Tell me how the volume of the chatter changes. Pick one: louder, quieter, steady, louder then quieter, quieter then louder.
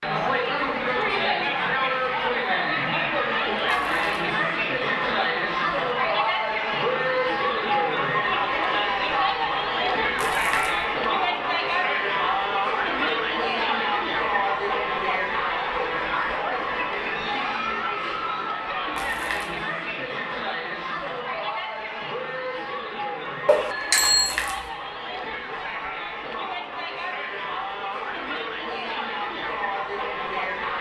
quieter.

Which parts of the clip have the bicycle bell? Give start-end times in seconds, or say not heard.
23.4-24.4.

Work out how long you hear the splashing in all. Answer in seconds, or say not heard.
3 s.